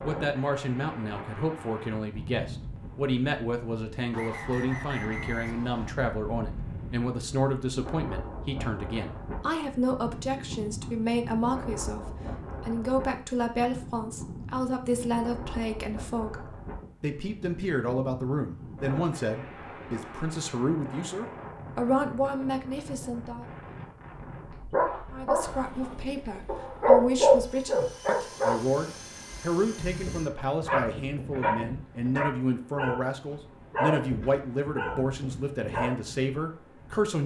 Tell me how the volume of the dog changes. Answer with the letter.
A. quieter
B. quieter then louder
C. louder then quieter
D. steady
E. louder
C.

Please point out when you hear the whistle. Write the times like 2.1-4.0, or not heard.
4.1-6.0.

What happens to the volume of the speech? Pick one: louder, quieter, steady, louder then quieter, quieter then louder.
steady.